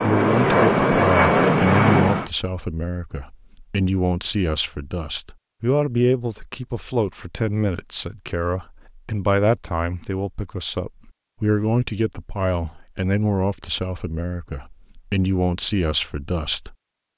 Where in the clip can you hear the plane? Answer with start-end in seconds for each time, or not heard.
0.0-2.3.